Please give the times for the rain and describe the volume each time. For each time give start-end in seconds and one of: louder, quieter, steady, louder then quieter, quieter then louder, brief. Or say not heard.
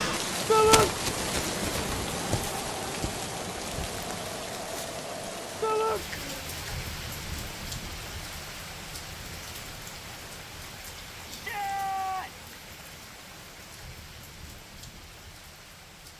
0.0-16.1 quieter.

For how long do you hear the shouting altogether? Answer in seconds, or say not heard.
2 s.